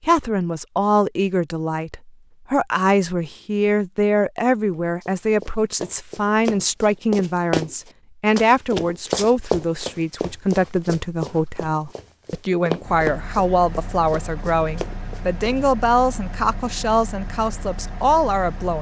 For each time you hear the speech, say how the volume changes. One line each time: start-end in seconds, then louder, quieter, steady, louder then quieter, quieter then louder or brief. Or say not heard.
0.0-18.7 steady.